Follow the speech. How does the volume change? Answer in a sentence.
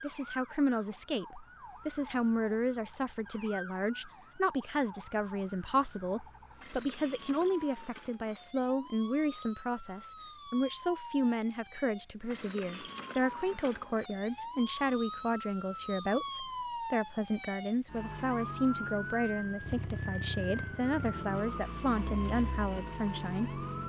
The loudness of the speech stays about the same.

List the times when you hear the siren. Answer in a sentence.
You can hear the siren from 0.0 to 23.8 s.